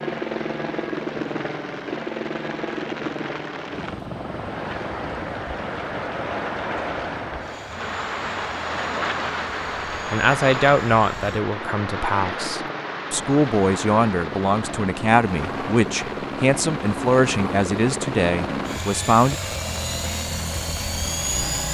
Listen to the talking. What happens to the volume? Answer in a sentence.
The loudness of the talking stays about the same.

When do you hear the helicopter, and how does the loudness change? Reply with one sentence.
The helicopter can be heard from 0.0 to 21.6 s, getting quieter then louder.